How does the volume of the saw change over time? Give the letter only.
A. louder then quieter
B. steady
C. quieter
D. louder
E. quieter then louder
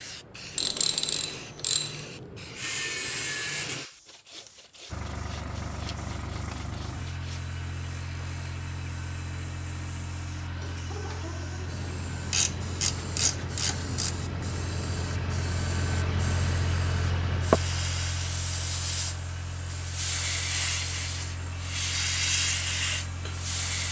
C.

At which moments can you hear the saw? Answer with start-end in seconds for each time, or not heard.
2.5-8.4.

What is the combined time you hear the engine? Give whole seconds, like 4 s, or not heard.
19 s.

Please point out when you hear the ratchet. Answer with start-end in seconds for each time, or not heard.
0.6-2.0, 12.3-14.2.